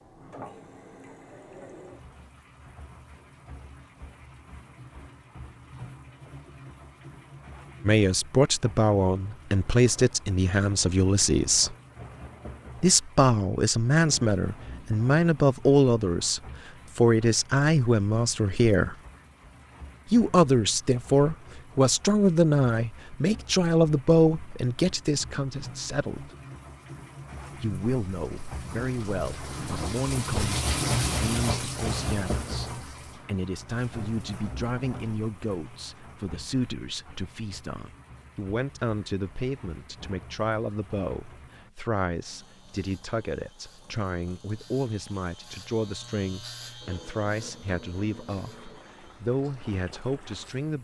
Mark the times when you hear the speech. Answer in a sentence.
The speech can be heard from 7.8 to 11.8 s, from 12.8 to 18.9 s, from 20.1 to 26.4 s and from 27.6 to 50.7 s.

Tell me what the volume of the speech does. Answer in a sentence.
The volume of the speech goes down.